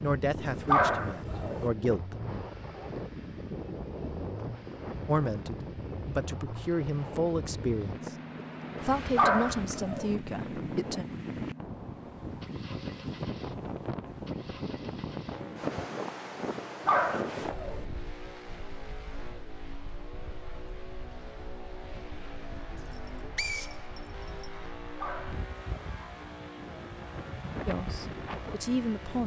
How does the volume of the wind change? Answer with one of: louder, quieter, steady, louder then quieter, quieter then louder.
quieter then louder.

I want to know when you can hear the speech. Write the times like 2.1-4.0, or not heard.
0.0-2.2, 5.0-8.2, 8.8-11.1, 27.6-29.2.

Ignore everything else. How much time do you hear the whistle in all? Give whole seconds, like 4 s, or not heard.
2 s.